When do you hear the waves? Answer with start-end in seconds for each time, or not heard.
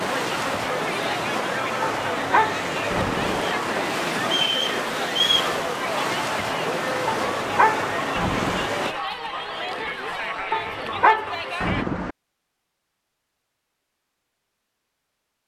0.0-8.9.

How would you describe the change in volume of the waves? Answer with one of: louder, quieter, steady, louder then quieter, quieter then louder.
steady.